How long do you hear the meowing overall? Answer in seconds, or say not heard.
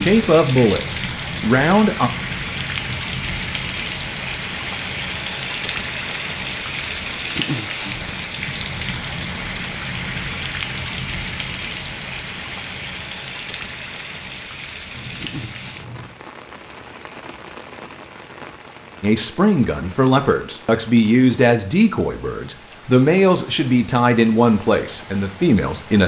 2 s.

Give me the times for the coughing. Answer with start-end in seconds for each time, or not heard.
not heard.